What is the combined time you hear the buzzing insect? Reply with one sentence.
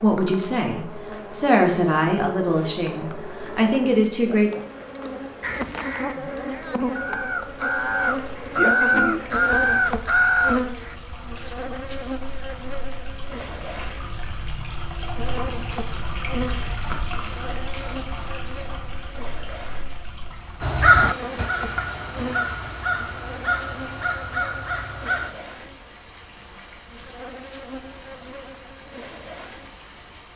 You can hear the buzzing insect for 30 seconds altogether.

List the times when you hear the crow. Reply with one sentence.
You can hear the crow from 5.4 to 10.9 s and from 20.6 to 25.4 s.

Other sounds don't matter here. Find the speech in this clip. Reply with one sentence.
You can hear the speech from 0.0 to 4.5 s.